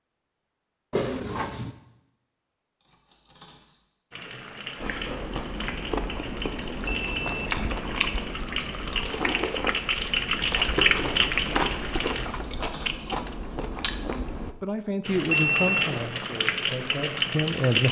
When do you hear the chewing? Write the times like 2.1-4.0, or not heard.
4.8-14.6.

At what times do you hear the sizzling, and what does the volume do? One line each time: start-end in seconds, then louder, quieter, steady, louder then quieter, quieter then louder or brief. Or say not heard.
4.1-12.2 louder
15.1-17.8 brief.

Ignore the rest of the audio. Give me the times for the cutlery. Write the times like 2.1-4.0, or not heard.
2.8-3.8, 12.2-13.1.